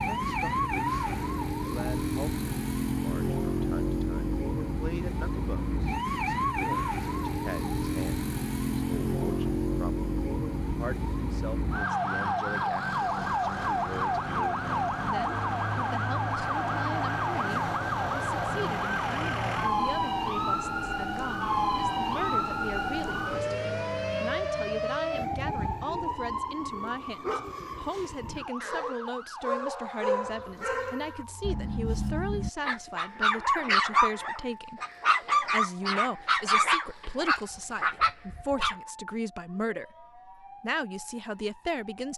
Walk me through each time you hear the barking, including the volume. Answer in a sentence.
The barking can be heard from 27.2 to 38.8 s, getting louder.